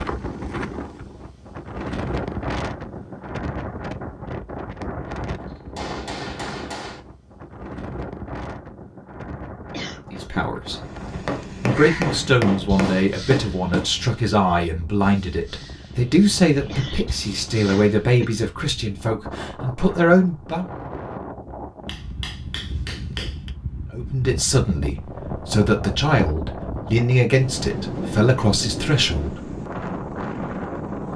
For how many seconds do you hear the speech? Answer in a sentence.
You can hear the speech for 15 seconds altogether.